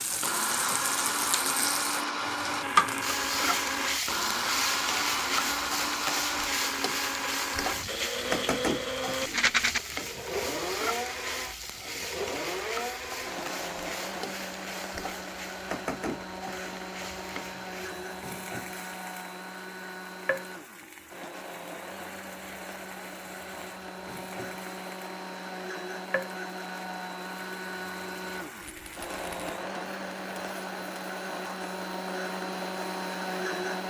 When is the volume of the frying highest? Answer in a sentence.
The volume of the frying peaks at 3 seconds.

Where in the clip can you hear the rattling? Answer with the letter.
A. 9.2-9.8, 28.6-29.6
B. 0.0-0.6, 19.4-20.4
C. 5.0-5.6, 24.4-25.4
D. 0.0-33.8
A.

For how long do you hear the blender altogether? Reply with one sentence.
You can hear the blender for 34 seconds altogether.